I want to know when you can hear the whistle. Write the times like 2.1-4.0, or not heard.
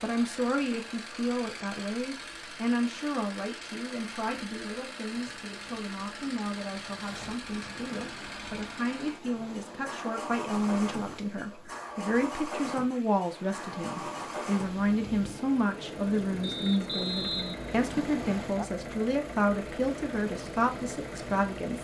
16.4-18.4.